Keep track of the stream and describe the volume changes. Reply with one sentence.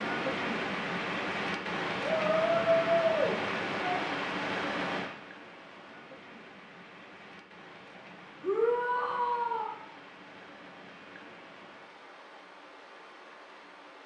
The volume of the stream goes down.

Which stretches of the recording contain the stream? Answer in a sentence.
The stream can be heard from 0.0 to 14.0 s.